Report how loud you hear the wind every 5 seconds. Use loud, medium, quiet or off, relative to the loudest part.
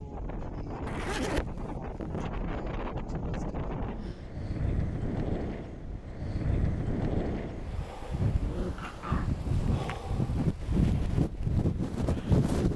medium, medium, loud.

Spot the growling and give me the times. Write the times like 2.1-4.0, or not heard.
3.1-4.3, 8.4-9.3.